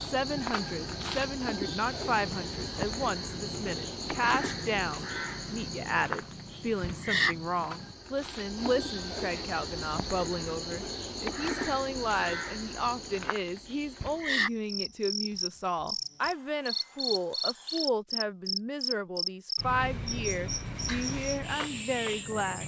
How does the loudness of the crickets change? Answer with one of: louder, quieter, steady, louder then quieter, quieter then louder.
steady.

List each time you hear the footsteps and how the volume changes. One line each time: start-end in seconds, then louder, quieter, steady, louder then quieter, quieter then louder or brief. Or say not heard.
not heard.